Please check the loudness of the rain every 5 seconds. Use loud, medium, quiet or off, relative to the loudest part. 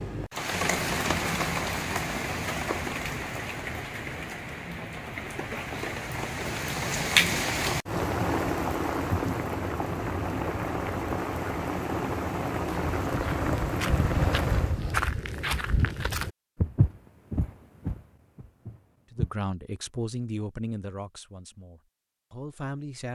loud, loud, loud, off, off.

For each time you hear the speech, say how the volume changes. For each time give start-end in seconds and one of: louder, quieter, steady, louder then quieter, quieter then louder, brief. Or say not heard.
19.1-23.1 quieter then louder.